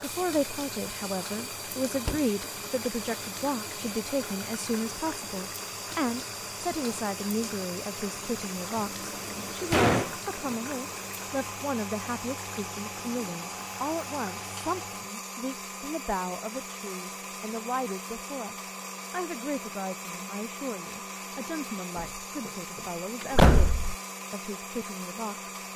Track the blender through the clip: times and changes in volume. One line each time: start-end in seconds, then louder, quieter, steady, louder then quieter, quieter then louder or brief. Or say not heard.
0.0-25.7 steady.